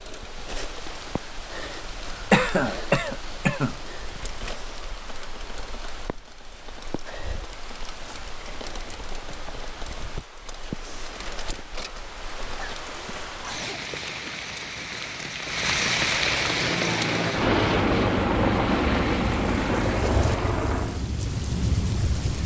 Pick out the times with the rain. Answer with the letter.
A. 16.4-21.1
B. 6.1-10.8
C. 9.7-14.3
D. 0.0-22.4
D.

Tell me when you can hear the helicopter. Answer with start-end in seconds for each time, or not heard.
16.4-21.1.